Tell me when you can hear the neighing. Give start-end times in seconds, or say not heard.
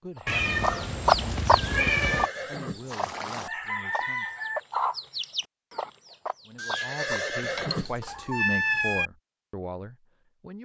1.4-3.5, 6.5-8.0.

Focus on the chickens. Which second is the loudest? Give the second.
1 s.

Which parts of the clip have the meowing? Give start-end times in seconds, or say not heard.
0.2-2.3, 7.4-9.1.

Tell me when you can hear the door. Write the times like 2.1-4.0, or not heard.
not heard.